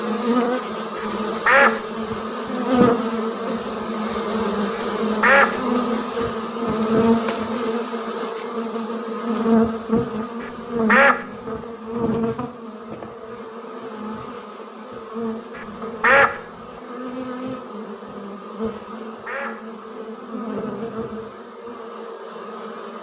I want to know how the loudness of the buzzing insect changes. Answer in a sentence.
The volume of the buzzing insect goes down.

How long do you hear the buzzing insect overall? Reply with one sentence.
The buzzing insect can be heard for 23 seconds in total.